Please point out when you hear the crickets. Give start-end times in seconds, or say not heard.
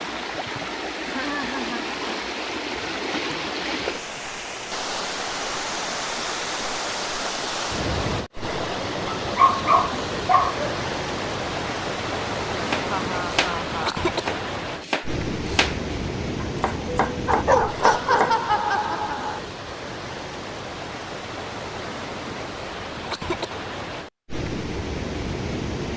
not heard.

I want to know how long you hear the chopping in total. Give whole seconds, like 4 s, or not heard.
6 s.